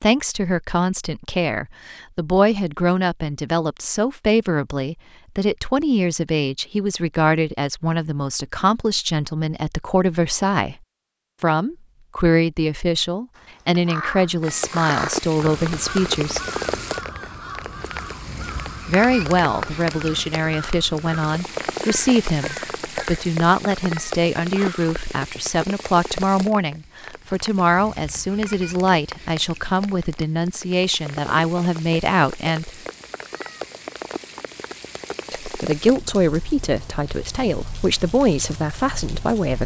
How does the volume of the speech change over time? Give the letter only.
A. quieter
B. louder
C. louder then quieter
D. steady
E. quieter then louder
D.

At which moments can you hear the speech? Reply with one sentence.
You can hear the speech from 0.0 to 10.8 s, from 11.4 to 16.4 s, from 18.9 to 32.8 s and from 35.3 to 39.6 s.